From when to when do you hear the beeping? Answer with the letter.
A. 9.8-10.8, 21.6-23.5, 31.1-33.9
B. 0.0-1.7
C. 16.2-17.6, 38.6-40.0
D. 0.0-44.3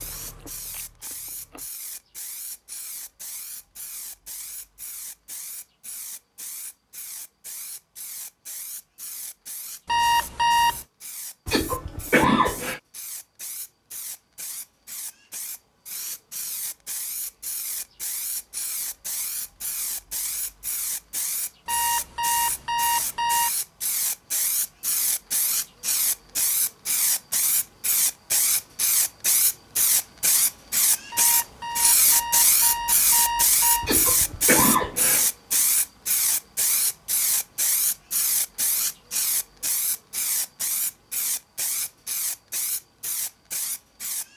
A.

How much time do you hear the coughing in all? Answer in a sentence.
You can hear the coughing for 3 seconds altogether.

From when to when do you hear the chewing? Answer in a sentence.
You can hear the chewing from 0.0 to 1.7 s.